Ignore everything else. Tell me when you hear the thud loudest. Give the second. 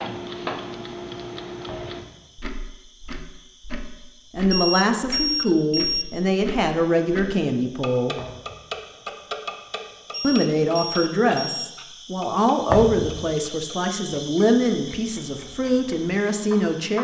13 s.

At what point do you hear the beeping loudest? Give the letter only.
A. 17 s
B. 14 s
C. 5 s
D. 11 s
C.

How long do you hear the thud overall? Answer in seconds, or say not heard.
2 s.